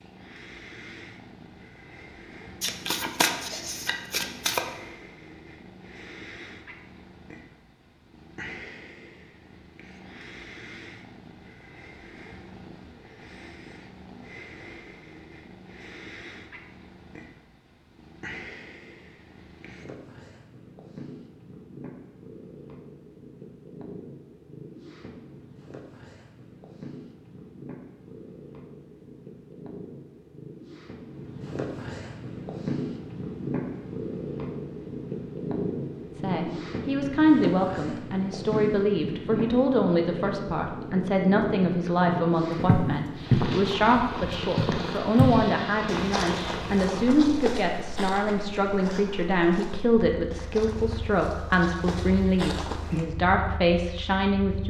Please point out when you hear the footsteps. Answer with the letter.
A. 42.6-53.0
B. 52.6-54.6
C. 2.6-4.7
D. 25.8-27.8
A.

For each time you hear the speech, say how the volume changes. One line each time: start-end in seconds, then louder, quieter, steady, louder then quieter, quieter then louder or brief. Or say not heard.
36.1-54.6 steady.